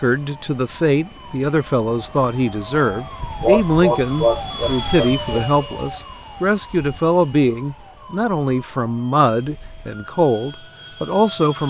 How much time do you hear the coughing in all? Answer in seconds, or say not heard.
2 s.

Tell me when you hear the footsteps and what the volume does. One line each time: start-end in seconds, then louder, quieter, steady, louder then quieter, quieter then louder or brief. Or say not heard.
not heard.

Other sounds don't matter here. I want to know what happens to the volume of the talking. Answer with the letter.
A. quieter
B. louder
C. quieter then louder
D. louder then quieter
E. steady
E.